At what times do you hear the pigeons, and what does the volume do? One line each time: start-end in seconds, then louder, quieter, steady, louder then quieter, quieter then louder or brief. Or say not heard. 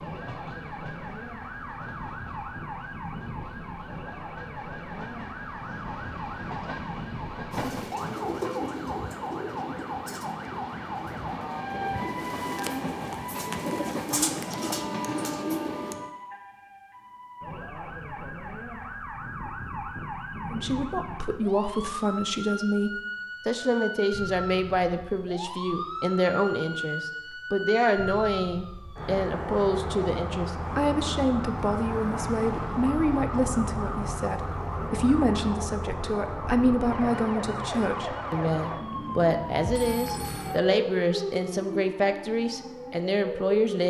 7.5-15.9 quieter then louder.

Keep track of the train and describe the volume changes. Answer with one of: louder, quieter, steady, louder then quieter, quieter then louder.
louder.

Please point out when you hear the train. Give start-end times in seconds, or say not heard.
0.0-16.1.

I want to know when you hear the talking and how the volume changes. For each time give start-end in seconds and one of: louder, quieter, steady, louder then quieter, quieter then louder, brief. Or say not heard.
20.4-43.8 steady.